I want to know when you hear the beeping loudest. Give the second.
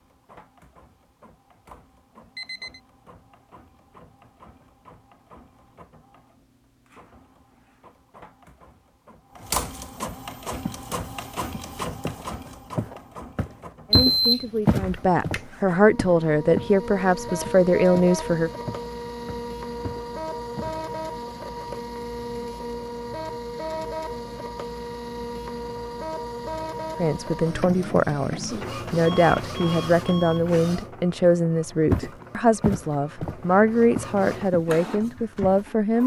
14 s.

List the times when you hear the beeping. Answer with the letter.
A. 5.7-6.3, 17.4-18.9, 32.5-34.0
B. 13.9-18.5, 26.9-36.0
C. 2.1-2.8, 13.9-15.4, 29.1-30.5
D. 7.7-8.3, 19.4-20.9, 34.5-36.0
C.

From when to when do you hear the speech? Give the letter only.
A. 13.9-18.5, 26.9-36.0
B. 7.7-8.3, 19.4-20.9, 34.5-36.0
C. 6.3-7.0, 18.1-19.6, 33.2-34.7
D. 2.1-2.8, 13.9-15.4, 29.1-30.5
A.